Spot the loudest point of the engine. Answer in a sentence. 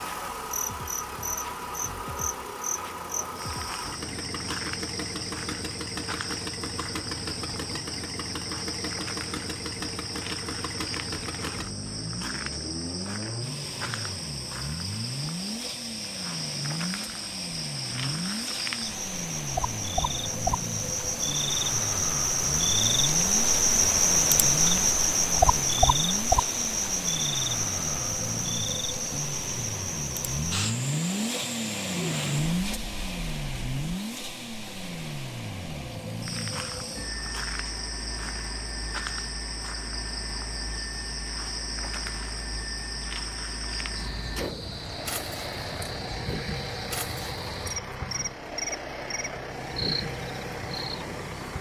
The loudest moment of the engine is at 32 seconds.